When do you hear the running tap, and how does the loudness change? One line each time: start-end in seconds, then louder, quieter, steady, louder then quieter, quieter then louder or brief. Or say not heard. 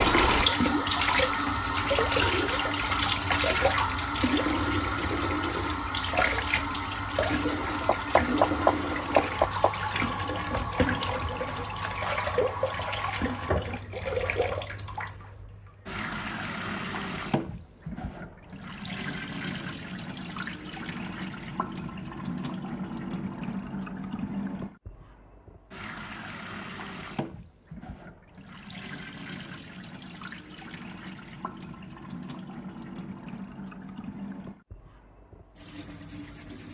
0.0-36.6 quieter.